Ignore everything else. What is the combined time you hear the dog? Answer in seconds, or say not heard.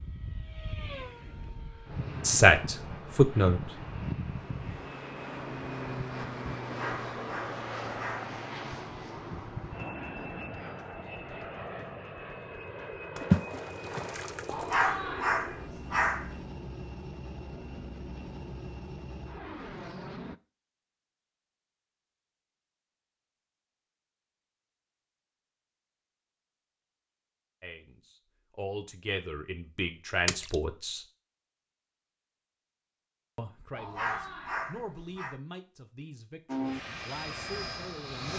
5 s.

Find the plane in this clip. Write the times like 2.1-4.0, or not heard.
0.0-20.4, 36.5-38.3.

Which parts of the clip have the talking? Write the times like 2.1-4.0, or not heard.
2.2-3.7, 27.6-31.1, 33.4-38.3.